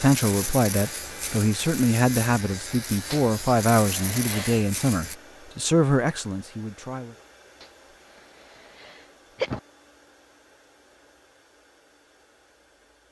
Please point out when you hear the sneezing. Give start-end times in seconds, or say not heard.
3.1-4.7, 7.6-9.6.